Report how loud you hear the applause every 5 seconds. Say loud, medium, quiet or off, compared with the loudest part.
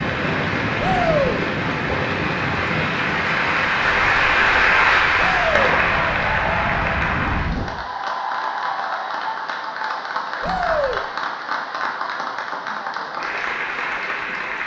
loud, loud, medium.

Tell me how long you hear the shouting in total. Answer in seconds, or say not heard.
2 s.